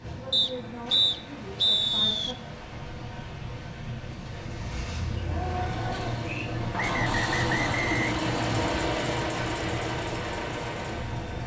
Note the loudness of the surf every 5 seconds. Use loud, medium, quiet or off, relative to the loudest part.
medium, loud, medium.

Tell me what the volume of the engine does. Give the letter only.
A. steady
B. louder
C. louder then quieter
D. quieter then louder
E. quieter
B.